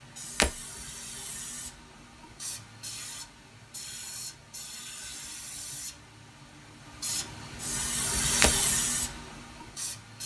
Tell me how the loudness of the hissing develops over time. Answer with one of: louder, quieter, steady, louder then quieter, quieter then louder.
louder.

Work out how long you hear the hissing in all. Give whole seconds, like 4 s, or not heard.
10 s.